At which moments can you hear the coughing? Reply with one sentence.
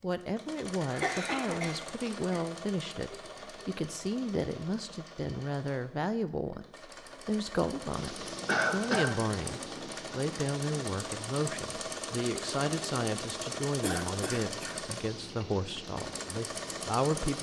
The coughing can be heard from 0.8 to 2.4 s, from 8.4 to 9.2 s and from 13.8 to 14.8 s.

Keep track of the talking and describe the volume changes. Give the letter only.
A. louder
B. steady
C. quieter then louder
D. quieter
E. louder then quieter
B.